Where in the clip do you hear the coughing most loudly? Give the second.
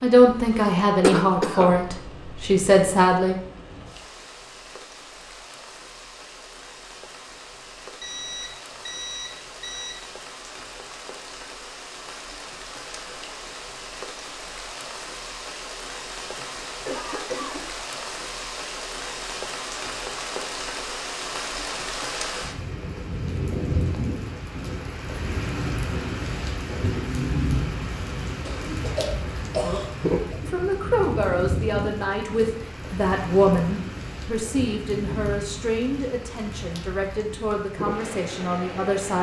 1 s.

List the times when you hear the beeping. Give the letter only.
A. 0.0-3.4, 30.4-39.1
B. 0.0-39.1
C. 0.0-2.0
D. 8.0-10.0
D.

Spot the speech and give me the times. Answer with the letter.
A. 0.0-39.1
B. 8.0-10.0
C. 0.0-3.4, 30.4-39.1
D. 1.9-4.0
C.